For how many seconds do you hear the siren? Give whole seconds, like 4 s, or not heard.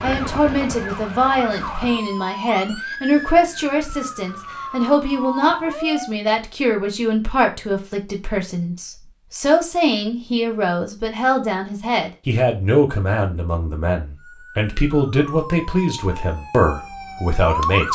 10 s.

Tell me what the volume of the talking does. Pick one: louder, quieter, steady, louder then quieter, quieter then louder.
steady.